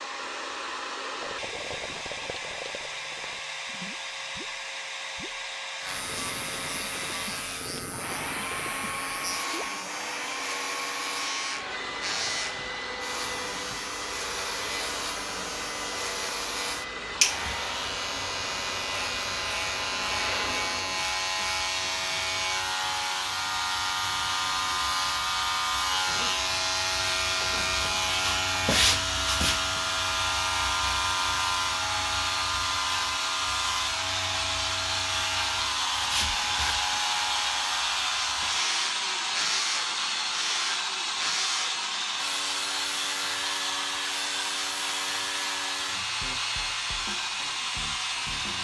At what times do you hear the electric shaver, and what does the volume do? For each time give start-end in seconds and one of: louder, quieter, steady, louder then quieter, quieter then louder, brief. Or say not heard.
5.8-48.5 louder then quieter.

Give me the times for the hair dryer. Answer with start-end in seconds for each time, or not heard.
0.0-48.5.